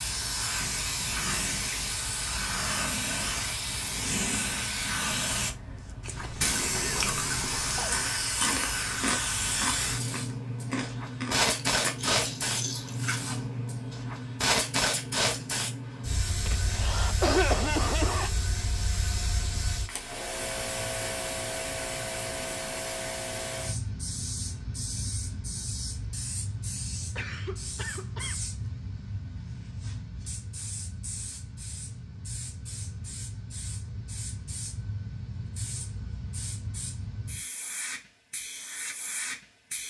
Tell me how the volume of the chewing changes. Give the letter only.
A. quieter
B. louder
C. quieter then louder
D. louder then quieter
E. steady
E.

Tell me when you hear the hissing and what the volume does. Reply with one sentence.
You can hear the hissing from 0.0 to 39.8 s, getting quieter.